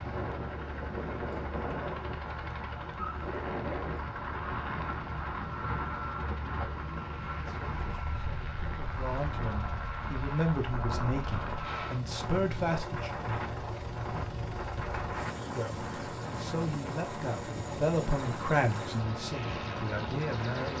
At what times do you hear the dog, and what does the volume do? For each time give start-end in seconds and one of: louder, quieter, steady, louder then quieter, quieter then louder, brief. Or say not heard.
not heard.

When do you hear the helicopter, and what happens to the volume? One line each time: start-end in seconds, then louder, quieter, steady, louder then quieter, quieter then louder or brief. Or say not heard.
0.0-20.7 steady.